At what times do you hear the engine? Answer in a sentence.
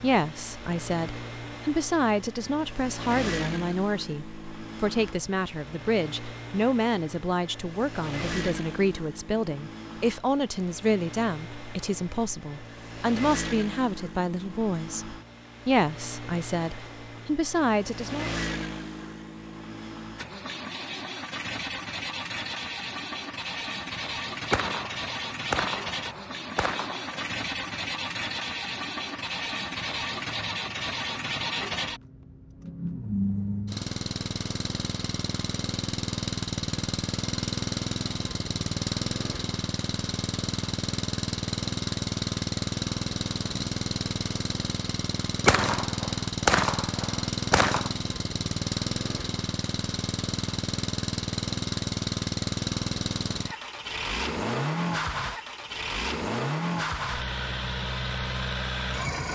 You can hear the engine from 0.0 to 59.3 s.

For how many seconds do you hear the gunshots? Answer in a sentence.
You can hear the gunshots for 5 seconds altogether.